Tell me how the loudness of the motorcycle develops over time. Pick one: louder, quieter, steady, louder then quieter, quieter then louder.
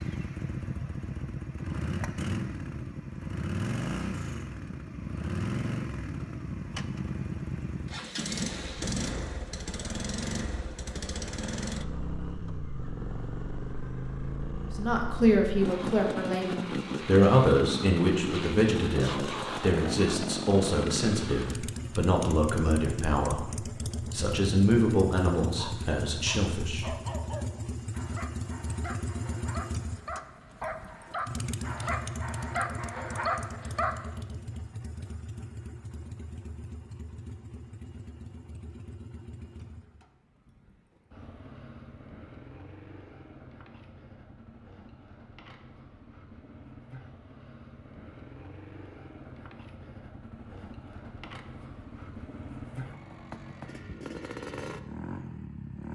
quieter.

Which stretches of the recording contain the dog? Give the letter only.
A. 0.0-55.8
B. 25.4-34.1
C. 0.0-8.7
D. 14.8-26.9
B.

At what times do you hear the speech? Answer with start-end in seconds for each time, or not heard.
14.8-26.9.